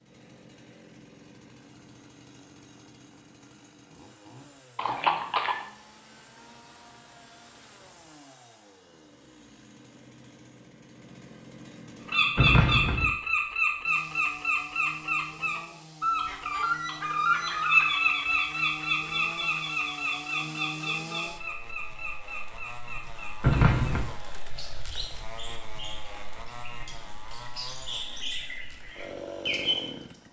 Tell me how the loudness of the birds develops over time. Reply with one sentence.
The volume of the birds goes down, then up.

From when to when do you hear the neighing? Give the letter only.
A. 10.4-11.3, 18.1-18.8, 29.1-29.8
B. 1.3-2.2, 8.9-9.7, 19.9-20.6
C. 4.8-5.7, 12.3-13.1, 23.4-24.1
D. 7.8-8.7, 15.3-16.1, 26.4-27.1
C.